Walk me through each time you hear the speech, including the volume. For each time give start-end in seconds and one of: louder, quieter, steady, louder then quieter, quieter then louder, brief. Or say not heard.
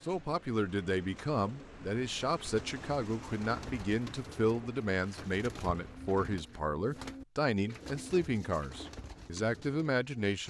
0.0-10.4 steady.